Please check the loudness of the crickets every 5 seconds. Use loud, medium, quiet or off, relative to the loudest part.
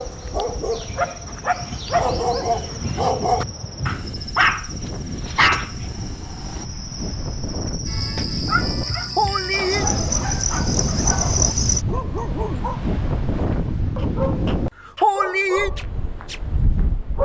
quiet, medium, loud, off.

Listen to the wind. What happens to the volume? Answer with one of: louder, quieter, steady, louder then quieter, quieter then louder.
louder.